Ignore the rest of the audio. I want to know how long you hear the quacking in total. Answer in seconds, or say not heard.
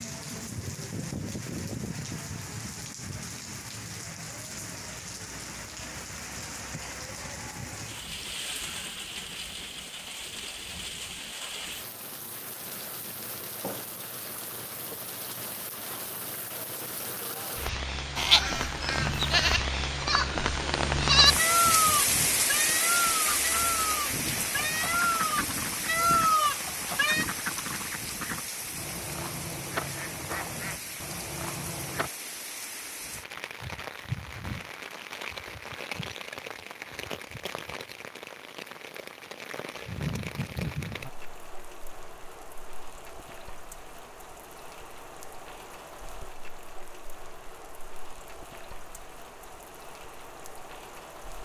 9 s.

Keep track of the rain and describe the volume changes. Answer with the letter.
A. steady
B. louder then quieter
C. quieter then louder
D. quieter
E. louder
B.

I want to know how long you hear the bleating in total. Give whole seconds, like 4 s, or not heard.
9 s.